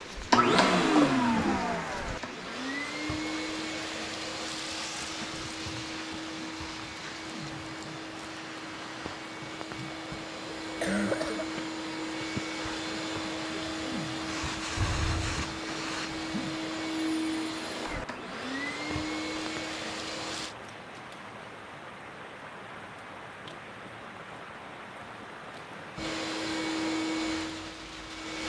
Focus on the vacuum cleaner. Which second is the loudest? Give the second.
1 s.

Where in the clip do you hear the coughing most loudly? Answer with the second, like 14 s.
11 s.